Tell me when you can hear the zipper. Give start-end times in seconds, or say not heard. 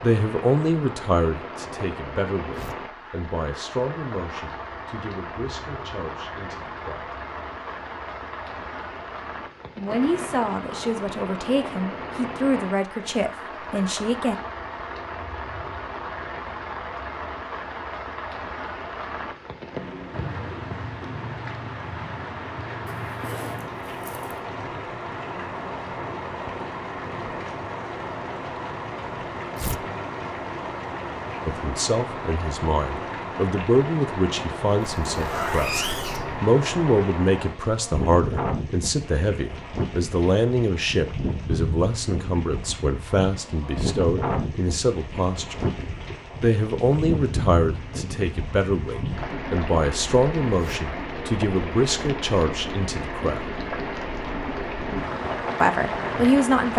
22.9-24.4, 35.0-36.4.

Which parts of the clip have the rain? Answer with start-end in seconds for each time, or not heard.
0.0-56.7.